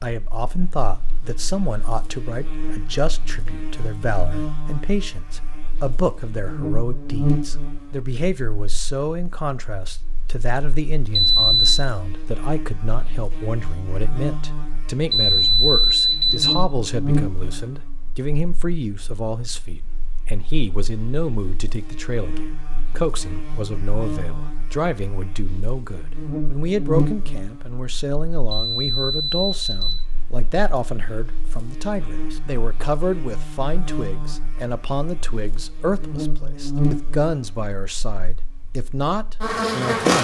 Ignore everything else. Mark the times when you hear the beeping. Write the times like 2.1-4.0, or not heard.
11.2-11.8, 15.1-16.6, 28.5-30.0.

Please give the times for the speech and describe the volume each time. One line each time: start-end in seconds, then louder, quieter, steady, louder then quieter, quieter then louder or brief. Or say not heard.
0.0-40.1 steady.